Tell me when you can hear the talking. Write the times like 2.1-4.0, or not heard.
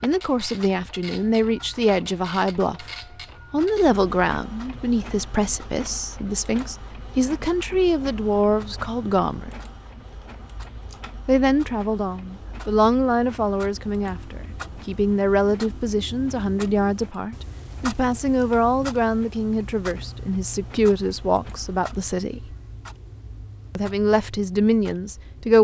0.0-2.9, 3.5-9.5, 11.2-22.4, 23.8-25.5.